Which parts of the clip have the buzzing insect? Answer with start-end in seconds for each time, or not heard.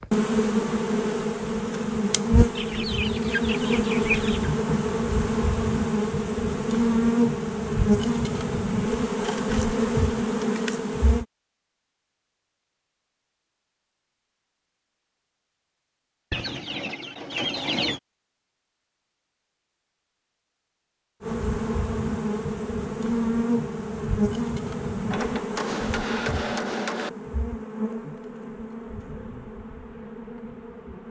0.0-11.2, 21.2-31.0.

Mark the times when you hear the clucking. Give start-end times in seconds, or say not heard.
2.5-4.5, 16.3-18.0.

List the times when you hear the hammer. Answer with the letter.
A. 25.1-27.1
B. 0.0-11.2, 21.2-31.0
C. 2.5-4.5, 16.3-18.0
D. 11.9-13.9
A.